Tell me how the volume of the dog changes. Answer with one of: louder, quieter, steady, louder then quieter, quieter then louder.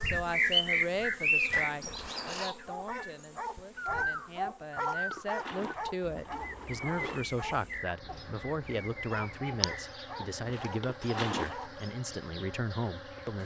quieter.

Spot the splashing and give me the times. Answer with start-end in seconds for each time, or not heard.
0.8-2.5, 4.8-7.2, 10.4-11.9.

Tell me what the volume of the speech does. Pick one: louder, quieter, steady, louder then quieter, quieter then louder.
quieter then louder.